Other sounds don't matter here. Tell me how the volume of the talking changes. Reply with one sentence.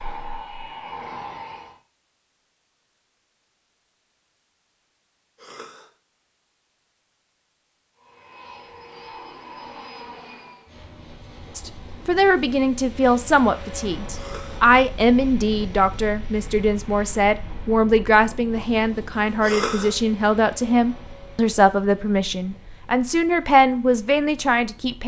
The loudness of the talking stays about the same.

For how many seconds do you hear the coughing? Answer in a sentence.
The coughing can be heard for 2 seconds in total.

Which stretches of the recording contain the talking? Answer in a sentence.
You can hear the talking from 11.6 to 25.0 s.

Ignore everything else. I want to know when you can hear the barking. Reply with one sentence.
You can't hear the barking here.